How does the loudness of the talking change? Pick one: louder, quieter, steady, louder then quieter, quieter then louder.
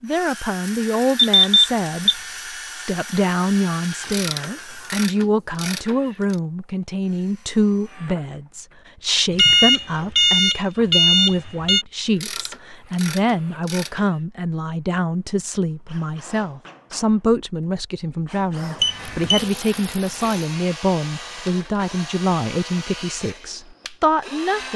steady.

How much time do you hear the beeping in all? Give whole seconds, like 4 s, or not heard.
4 s.